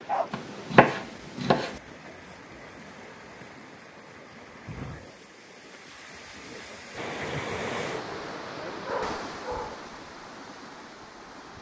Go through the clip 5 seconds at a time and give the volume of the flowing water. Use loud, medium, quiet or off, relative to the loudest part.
medium, loud, medium.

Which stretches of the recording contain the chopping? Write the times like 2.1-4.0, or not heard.
0.3-1.8.